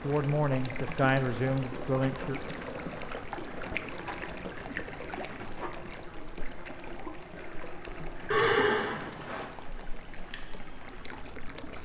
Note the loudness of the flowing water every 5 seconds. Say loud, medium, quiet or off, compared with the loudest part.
loud, medium, medium.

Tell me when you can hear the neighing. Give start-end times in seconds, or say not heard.
8.3-9.4.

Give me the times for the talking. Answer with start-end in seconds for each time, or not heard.
0.0-2.4.